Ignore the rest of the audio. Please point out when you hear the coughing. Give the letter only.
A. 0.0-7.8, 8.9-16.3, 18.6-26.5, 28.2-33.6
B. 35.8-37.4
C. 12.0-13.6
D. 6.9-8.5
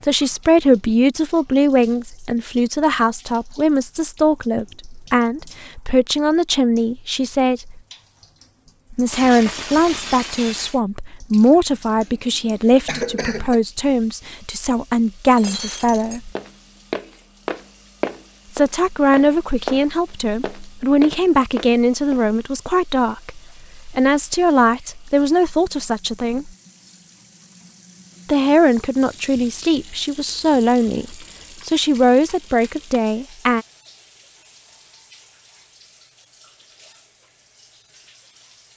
C.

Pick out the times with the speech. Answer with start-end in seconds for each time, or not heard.
0.0-7.8, 8.9-16.3, 18.6-26.5, 28.2-33.6.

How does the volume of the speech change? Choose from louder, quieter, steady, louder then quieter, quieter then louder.
steady.